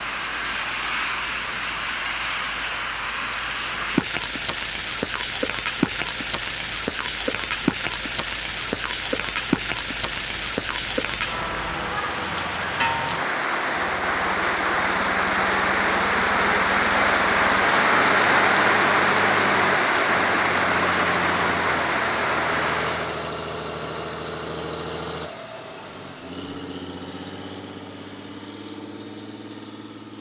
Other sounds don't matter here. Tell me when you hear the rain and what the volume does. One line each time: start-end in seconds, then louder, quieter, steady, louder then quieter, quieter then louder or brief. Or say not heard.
0.0-23.4 louder.